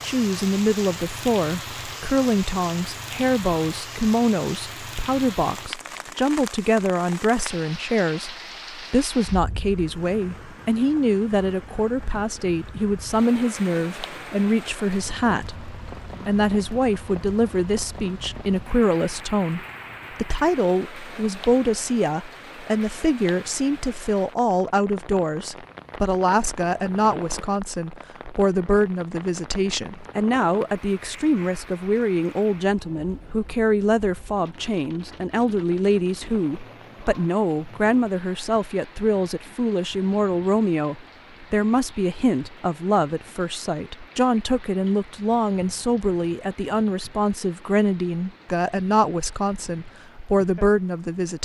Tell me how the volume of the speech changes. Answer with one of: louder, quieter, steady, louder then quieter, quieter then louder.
steady.